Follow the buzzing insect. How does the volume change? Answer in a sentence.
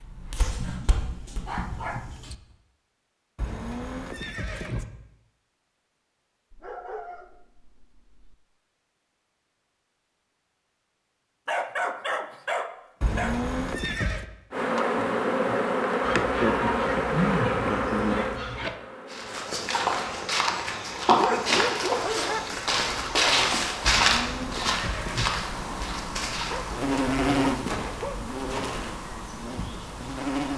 The loudness of the buzzing insect goes down, then up.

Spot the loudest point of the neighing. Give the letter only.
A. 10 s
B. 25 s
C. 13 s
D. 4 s
C.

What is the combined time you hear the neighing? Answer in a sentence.
The neighing can be heard for 4 seconds in total.